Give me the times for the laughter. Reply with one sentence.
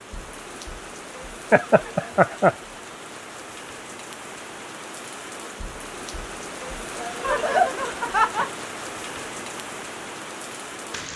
The laughter can be heard from 1.5 to 2.5 s and from 7.2 to 8.5 s.